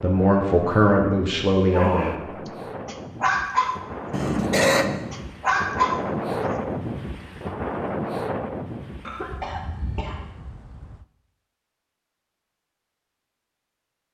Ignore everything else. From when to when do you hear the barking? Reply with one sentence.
You can hear the barking from 1.7 to 2.1 s, from 2.9 to 4.3 s and from 5.1 to 6.6 s.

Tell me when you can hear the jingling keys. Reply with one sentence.
The jingling keys can't be heard in this clip.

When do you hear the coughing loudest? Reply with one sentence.
The volume of the coughing peaks at 5 seconds.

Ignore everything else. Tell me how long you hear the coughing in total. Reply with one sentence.
You can hear the coughing for 2 seconds altogether.